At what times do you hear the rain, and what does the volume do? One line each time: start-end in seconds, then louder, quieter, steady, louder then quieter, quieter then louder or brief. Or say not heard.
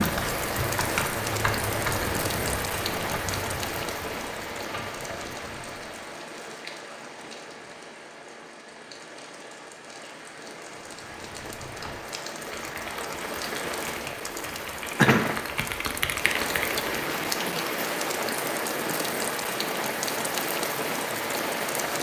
0.0-21.9 quieter then louder.